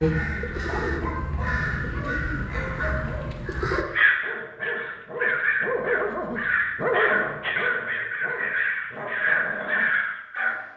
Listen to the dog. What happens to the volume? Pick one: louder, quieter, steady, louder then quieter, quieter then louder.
louder then quieter.